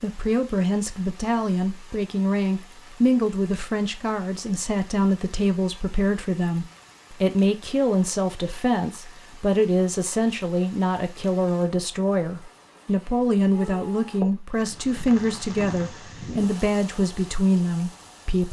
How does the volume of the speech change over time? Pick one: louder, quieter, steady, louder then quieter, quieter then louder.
steady.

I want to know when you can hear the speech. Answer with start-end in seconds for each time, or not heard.
0.0-18.4.